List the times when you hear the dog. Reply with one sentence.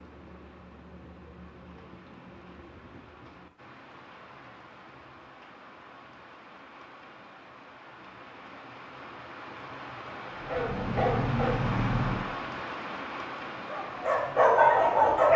You can hear the dog from 10.4 to 12.2 s and from 13.7 to 15.3 s.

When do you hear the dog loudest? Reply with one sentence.
The volume of the dog peaks at 15 seconds.